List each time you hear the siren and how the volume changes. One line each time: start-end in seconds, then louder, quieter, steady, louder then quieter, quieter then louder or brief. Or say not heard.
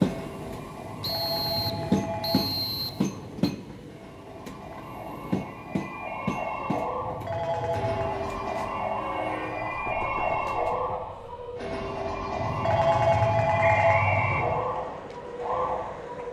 0.0-16.2 louder.